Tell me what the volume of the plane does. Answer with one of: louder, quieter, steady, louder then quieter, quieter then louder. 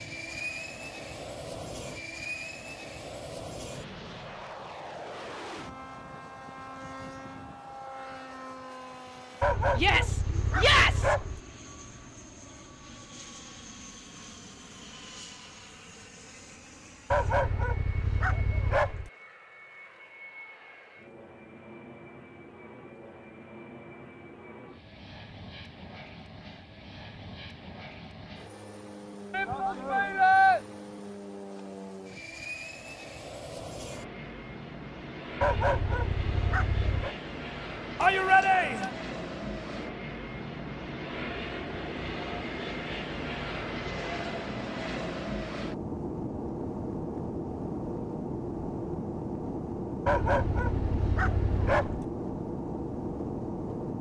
quieter then louder.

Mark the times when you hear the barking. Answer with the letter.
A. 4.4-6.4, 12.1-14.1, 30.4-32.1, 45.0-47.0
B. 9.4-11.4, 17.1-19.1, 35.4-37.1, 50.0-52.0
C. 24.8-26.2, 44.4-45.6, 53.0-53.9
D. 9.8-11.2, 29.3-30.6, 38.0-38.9
B.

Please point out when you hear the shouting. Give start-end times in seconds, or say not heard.
9.8-11.2, 29.3-30.6, 38.0-38.9.